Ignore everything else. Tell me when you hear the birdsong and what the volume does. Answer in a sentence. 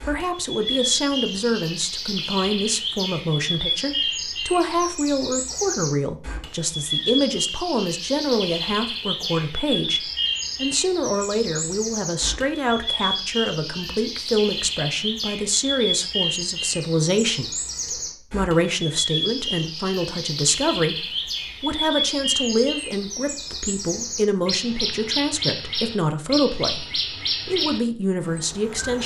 The birdsong can be heard from 0.0 to 29.0 s, at a steady volume.